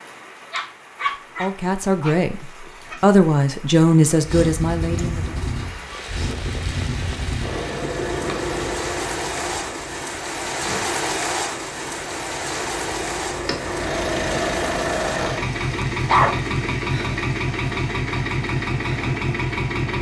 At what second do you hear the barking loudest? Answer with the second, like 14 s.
16 s.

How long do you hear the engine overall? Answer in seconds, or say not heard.
16 s.